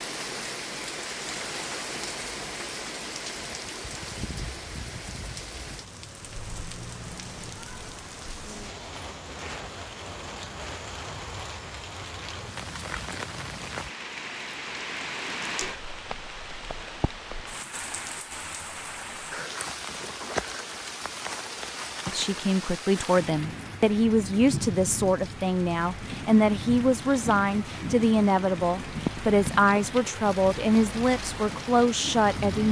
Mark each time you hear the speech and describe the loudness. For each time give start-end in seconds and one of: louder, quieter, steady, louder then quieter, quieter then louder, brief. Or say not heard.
22.1-32.6 steady.